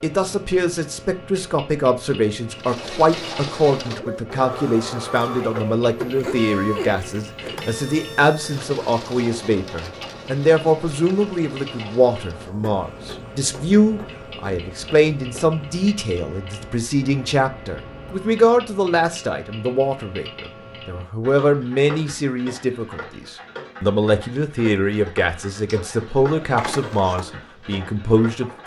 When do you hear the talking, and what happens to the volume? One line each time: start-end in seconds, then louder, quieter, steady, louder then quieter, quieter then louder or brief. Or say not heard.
0.0-28.6 steady.